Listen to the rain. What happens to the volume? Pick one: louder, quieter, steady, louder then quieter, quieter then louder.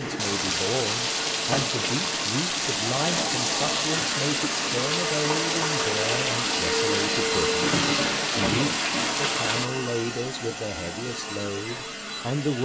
steady.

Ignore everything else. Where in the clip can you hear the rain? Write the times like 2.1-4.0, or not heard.
0.0-9.7.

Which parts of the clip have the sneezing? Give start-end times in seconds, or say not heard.
not heard.